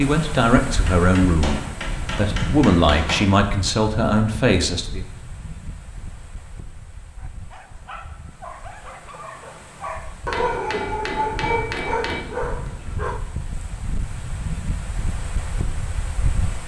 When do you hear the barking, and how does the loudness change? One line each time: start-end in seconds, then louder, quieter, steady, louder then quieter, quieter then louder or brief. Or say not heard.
7.2-13.2 louder.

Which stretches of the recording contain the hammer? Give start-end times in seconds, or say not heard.
0.8-3.4, 10.3-12.2.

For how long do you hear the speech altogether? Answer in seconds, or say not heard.
5 s.